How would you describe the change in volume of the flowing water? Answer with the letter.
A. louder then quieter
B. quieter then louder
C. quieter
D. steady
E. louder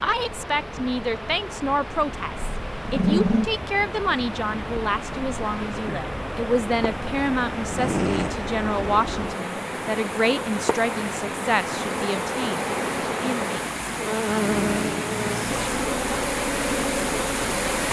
E.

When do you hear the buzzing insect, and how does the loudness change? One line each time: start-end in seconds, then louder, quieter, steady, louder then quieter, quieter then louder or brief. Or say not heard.
0.0-17.8 louder.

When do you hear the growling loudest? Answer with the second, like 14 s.
3 s.